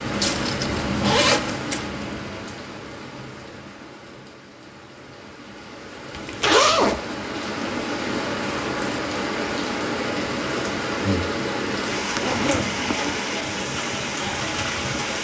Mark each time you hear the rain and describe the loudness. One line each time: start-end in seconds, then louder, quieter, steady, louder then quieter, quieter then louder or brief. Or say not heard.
0.0-15.1 quieter then louder.